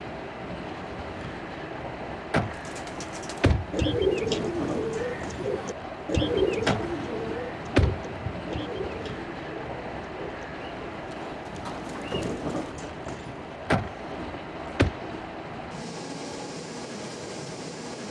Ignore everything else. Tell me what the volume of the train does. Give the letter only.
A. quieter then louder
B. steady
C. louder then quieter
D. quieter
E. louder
B.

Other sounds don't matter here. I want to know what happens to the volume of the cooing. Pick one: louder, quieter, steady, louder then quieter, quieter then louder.
quieter.